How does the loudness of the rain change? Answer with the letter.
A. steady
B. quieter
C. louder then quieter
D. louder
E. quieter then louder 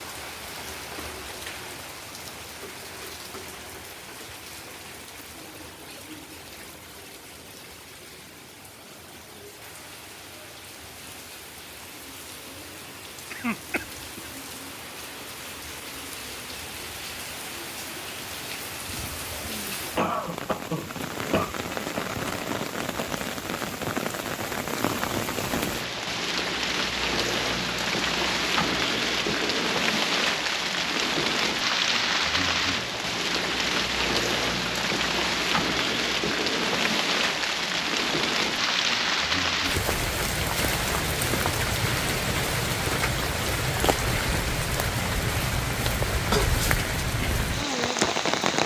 D.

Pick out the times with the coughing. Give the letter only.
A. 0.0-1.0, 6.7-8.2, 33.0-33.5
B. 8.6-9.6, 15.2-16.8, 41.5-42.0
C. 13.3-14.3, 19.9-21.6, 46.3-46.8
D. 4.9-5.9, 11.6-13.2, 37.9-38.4
C.